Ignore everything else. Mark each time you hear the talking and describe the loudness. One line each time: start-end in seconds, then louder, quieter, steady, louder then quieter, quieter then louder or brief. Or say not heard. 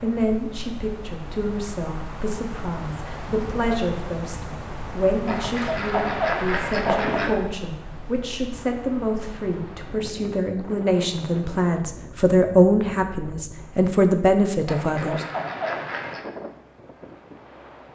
0.0-15.2 louder.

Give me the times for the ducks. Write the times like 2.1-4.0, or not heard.
5.2-7.3, 14.7-16.2.